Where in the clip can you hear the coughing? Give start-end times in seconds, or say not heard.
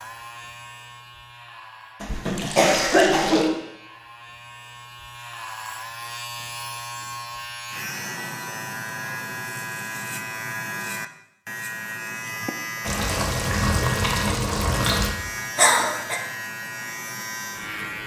2.0-3.5, 15.6-16.2.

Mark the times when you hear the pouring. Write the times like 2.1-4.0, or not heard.
2.0-3.5, 12.8-15.2.